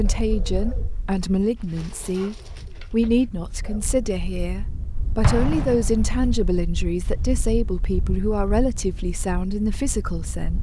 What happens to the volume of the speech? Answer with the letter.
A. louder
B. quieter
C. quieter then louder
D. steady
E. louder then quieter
D.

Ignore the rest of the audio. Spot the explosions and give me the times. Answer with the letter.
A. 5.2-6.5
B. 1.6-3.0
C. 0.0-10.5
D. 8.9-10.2
A.